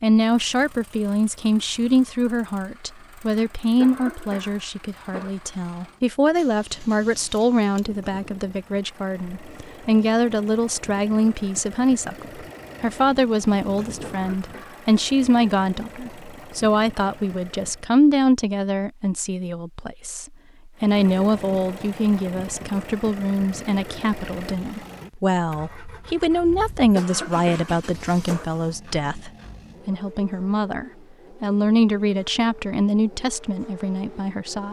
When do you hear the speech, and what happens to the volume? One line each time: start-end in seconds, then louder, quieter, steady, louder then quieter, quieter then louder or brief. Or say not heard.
0.0-34.6 steady.